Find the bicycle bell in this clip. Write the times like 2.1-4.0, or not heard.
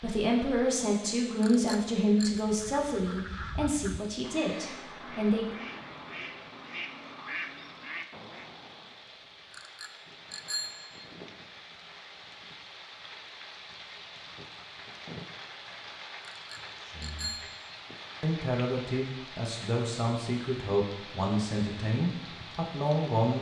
1.4-2.4, 9.5-11.1, 16.3-17.7.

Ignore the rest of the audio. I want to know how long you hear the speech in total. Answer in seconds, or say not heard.
11 s.